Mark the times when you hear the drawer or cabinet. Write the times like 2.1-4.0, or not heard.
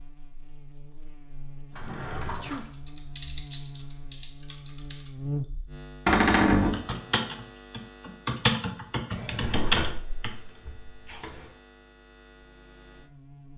1.8-2.6, 6.0-6.8, 9.1-11.4.